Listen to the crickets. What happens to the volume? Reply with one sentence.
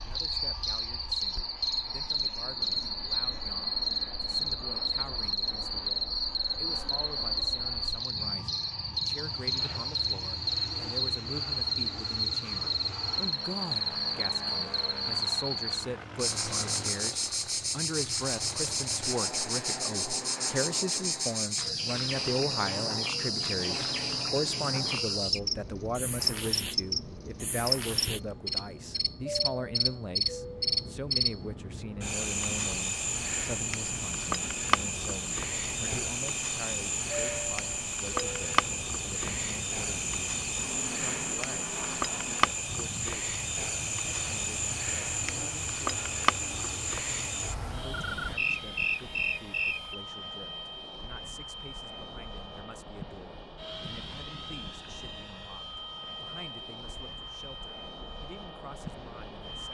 The volume of the crickets stays about the same.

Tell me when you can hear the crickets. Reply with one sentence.
You can hear the crickets from 0.0 to 50.0 s.